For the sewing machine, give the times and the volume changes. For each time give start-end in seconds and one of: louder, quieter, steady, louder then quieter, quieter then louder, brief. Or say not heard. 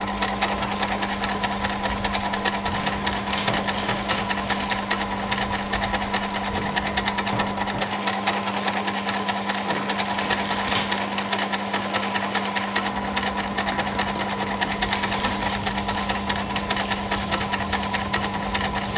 0.0-18.9 steady.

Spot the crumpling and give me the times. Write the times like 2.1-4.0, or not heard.
2.8-4.8, 10.1-10.9, 14.8-15.6.